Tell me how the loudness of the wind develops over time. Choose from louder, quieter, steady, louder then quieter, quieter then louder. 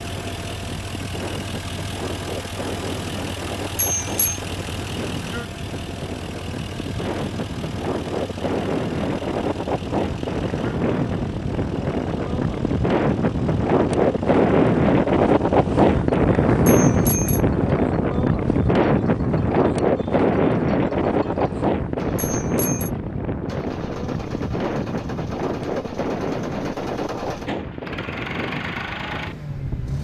louder then quieter.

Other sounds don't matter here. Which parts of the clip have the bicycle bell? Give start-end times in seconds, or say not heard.
3.8-4.4, 16.6-17.4, 22.1-22.9.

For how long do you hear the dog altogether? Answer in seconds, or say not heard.
not heard.